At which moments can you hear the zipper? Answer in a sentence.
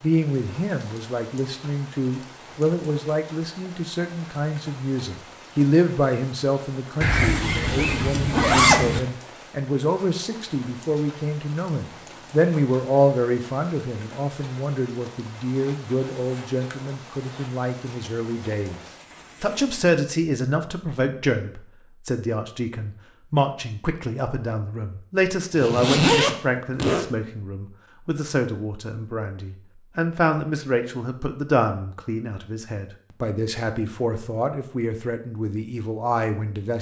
The zipper can be heard from 7.0 to 9.0 s, from 15.4 to 17.5 s and from 25.6 to 27.1 s.